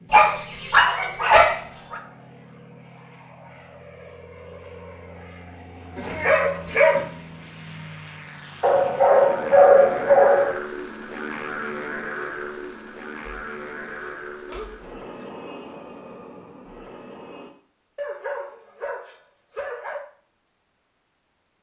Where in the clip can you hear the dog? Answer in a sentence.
The dog can be heard from 0.1 to 2.0 s, from 6.0 to 7.0 s, from 8.6 to 10.6 s, from 13.2 to 13.8 s, from 14.4 to 15.2 s and from 17.9 to 20.0 s.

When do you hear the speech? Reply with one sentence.
The speech can't be heard in this clip.